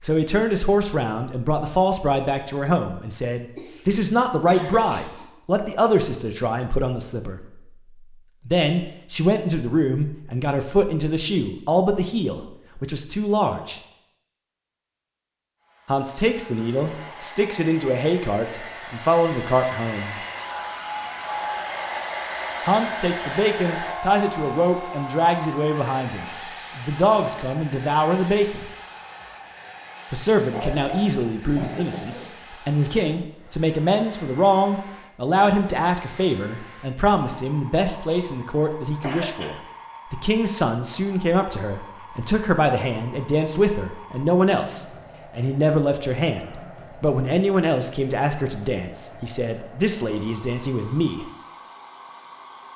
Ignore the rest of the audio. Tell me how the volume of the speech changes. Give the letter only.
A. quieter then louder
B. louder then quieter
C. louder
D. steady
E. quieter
D.